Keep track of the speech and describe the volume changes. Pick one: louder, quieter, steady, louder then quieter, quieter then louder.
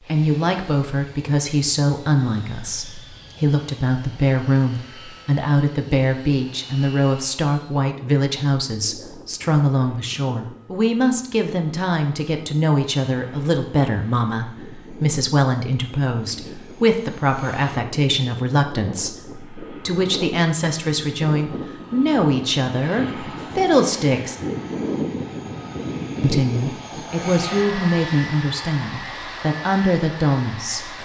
steady.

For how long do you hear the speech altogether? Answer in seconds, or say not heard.
29 s.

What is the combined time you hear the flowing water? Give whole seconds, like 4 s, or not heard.
not heard.